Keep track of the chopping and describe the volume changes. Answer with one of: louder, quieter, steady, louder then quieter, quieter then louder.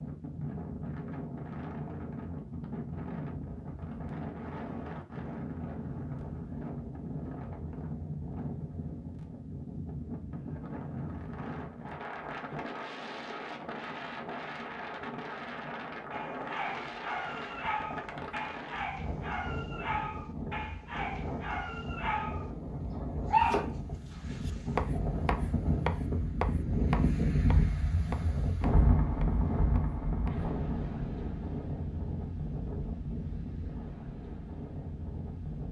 quieter.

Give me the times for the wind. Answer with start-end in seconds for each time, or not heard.
0.0-35.6.